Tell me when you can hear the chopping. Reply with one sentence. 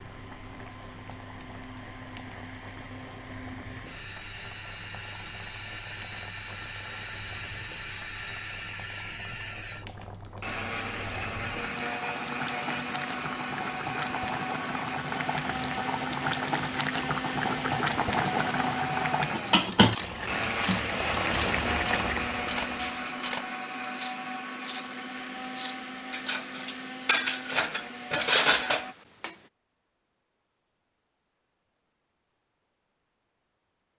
You can't hear the chopping here.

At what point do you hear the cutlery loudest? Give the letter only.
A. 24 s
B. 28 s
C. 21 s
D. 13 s
B.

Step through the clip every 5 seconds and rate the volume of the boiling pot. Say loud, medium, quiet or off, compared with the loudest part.
quiet, quiet, medium, loud, loud, off, off.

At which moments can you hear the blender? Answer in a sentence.
You can hear the blender from 0.0 to 28.9 s.